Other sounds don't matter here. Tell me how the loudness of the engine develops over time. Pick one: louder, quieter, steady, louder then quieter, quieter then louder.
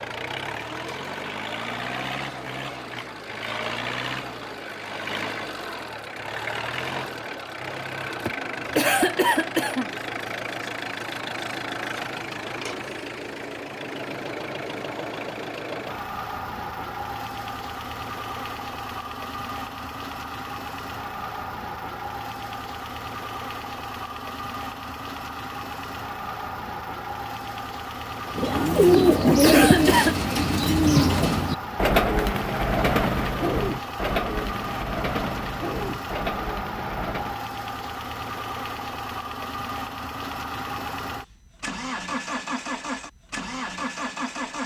steady.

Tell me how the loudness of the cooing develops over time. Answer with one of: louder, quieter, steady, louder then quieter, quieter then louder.
quieter.